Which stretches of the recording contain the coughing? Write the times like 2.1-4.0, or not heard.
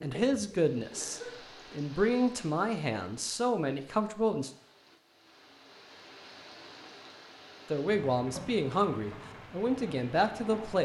0.9-1.5.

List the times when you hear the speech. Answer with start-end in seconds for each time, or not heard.
0.0-4.5, 7.7-10.8.